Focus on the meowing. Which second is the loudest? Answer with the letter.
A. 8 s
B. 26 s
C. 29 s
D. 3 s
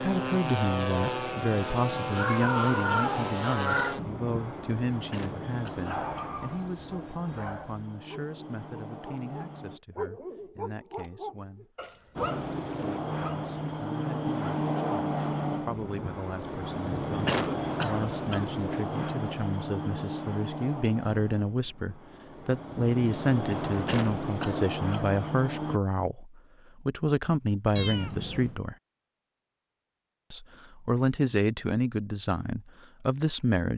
D.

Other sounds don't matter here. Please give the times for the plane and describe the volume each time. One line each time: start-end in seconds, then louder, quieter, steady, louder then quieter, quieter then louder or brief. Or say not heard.
0.0-9.8 quieter
12.2-25.8 quieter then louder.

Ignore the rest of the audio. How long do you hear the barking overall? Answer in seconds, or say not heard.
8 s.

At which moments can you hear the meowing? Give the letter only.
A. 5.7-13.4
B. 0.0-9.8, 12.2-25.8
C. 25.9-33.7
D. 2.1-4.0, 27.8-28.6
D.